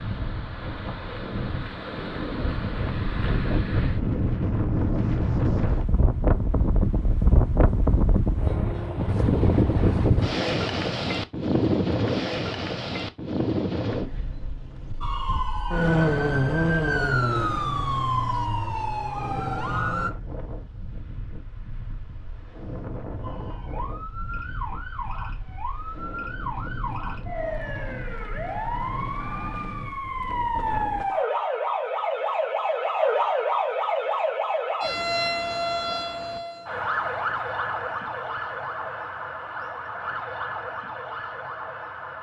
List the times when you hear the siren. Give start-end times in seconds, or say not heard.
15.0-20.1, 23.2-42.1.